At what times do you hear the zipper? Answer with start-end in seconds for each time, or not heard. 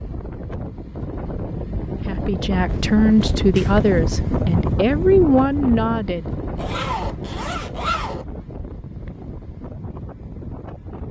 2.6-3.9, 6.5-8.2.